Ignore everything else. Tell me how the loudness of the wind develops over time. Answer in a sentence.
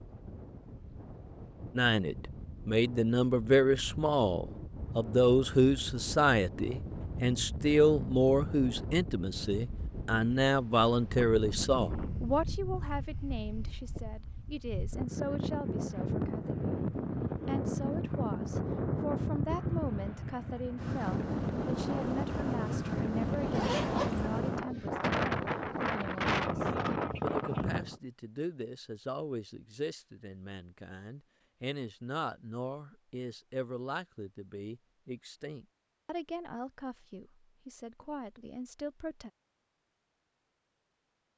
The loudness of the wind goes up.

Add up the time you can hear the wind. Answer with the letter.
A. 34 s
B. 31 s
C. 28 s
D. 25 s
C.